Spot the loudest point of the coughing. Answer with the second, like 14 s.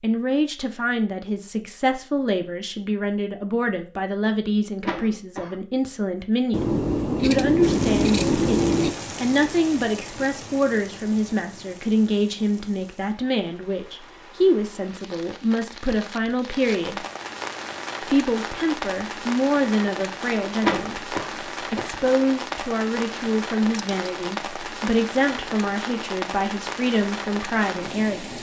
21 s.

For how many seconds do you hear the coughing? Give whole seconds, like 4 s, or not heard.
2 s.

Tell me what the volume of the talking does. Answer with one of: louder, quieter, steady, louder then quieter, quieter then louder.
steady.